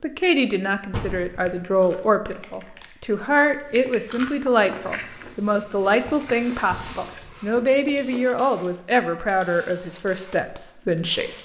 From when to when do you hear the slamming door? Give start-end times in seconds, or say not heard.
0.9-1.6, 6.7-7.2.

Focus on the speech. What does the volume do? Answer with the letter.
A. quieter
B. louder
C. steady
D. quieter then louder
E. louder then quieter
C.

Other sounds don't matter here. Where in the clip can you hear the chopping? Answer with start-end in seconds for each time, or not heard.
not heard.